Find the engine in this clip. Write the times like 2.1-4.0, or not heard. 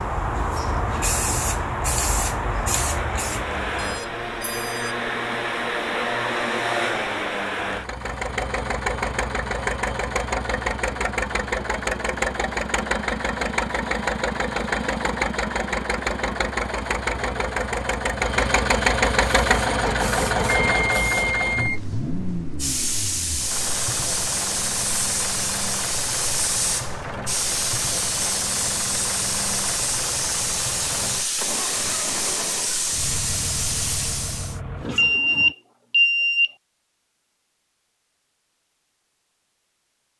0.0-35.5.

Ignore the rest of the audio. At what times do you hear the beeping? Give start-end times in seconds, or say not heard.
3.8-5.0, 20.4-21.8, 35.0-36.5.